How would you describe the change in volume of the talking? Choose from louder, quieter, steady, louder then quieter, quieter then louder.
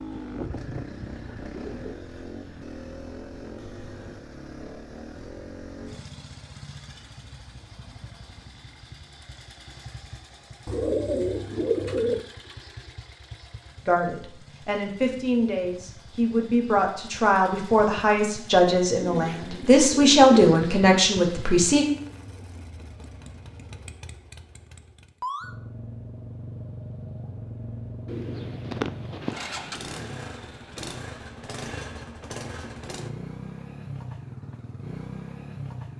louder.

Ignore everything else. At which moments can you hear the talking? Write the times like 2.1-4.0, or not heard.
13.8-21.9.